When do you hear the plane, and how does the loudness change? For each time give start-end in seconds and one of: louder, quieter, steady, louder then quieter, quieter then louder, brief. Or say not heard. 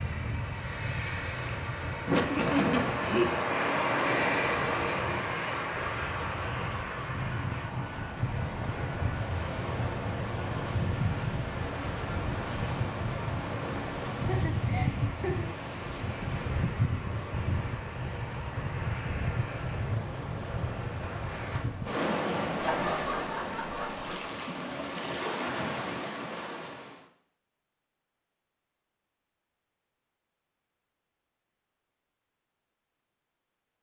0.0-21.7 quieter.